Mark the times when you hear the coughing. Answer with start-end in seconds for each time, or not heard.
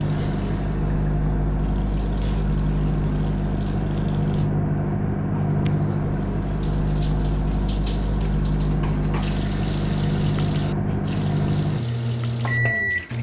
not heard.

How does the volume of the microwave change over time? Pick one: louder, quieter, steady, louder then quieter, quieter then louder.
steady.